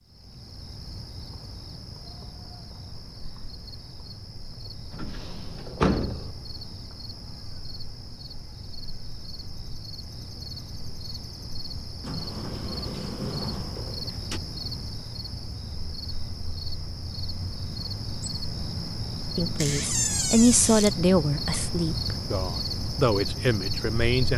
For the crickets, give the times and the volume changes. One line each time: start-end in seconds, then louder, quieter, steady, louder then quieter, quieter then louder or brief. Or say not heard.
0.0-24.3 louder.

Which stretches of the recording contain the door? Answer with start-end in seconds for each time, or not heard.
4.9-6.3, 12.0-14.4, 19.6-20.9.